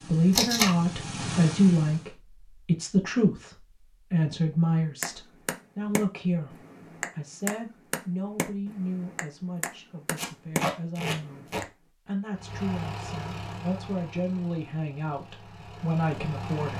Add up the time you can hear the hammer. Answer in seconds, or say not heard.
7 s.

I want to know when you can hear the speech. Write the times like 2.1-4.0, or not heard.
0.1-16.7.